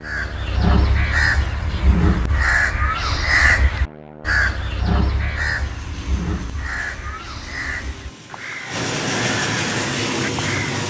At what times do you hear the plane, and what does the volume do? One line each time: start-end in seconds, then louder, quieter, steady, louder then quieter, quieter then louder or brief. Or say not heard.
0.0-10.8 louder.